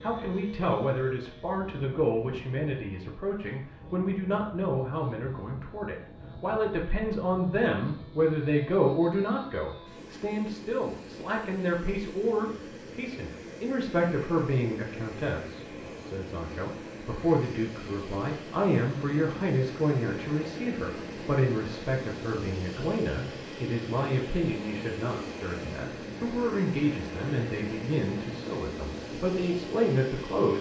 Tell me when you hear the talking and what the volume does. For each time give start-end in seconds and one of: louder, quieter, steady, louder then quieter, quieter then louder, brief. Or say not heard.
0.0-30.5 steady.